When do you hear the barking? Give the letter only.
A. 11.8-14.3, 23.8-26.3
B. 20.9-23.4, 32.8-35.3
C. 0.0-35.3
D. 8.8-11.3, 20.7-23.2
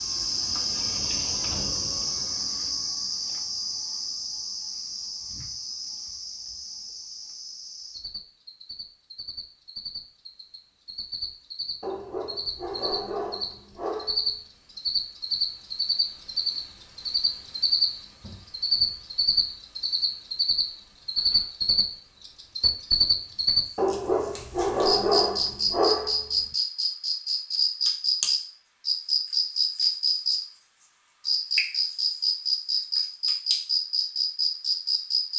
A.